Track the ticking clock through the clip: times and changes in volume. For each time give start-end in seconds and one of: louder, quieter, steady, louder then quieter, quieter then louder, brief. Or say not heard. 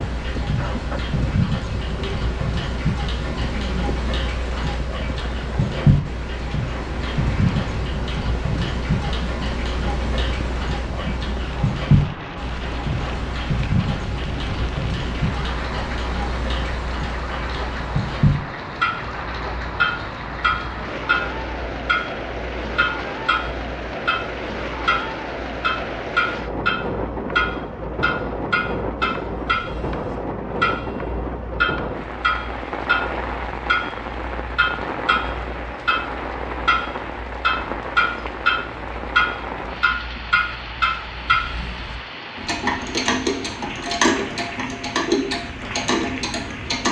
0.0-46.8 steady.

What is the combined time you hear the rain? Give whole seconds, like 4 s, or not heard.
47 s.